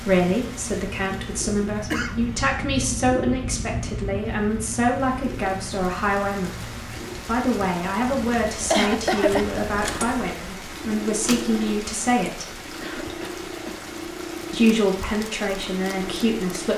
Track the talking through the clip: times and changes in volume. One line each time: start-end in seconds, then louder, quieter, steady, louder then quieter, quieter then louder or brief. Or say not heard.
0.0-12.6 steady
14.5-16.7 brief.